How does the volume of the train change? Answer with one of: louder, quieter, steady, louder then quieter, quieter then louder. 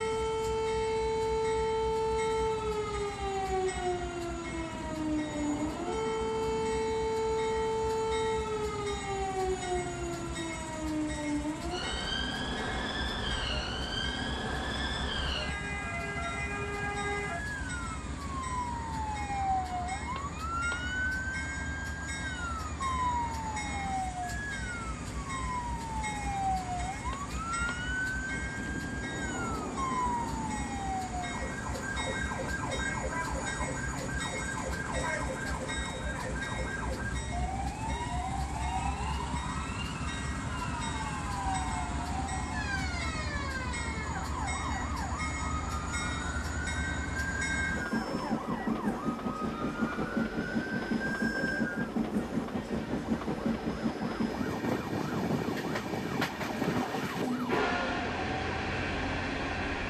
louder.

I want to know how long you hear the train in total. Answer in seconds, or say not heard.
60 s.